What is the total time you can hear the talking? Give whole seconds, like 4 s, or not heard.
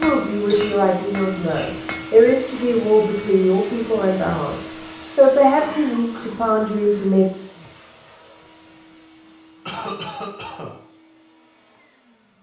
7 s.